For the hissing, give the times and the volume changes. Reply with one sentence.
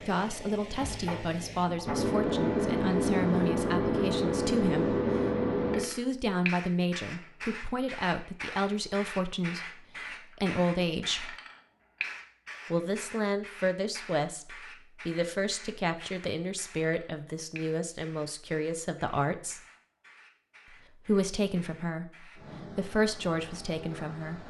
You can hear the hissing from 0.0 to 24.4 s, getting quieter.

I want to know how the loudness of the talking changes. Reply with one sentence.
The volume of the talking stays about the same.